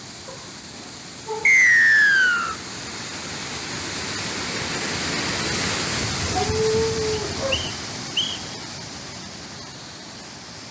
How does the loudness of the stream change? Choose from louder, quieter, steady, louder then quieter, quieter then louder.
louder then quieter.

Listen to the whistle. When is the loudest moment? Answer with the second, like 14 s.
2 s.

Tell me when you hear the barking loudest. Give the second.
7 s.